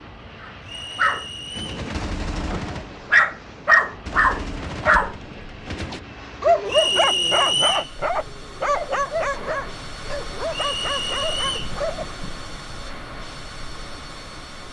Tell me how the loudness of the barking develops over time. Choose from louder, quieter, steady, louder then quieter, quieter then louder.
louder then quieter.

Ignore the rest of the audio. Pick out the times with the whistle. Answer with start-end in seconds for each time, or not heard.
0.7-1.8, 6.7-7.9, 10.5-11.8.